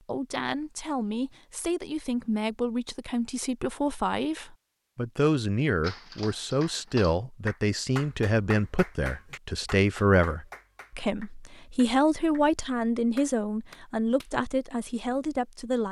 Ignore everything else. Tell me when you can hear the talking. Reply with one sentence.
The talking can be heard from 0.1 to 15.8 s.